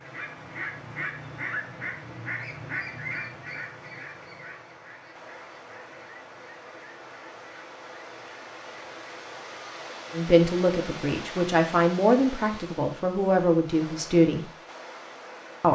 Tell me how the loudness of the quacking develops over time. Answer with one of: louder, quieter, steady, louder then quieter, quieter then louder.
quieter.